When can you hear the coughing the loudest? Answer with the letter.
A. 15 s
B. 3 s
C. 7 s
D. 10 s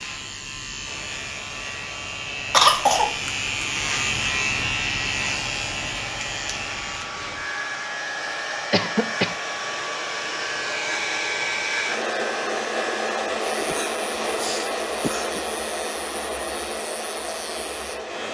B.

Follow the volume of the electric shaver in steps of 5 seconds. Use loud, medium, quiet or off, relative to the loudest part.
loud, loud, medium, medium.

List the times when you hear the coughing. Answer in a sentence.
The coughing can be heard from 2.5 to 3.1 s, from 8.7 to 9.3 s and from 13.6 to 15.4 s.